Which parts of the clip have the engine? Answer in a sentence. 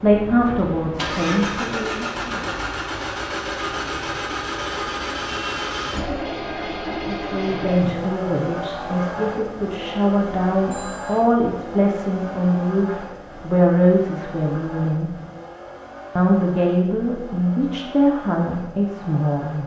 You can hear the engine from 0.0 to 19.6 s.